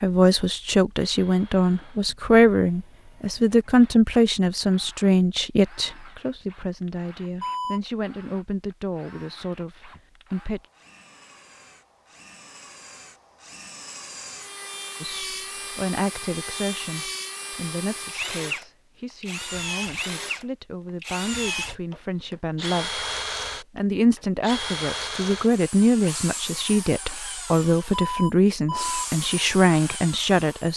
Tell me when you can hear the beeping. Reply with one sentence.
The beeping can be heard from 7.3 to 7.8 s and from 27.9 to 29.1 s.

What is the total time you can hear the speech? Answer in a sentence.
You can hear the speech for 26 seconds altogether.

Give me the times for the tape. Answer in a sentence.
The tape can't be heard in this clip.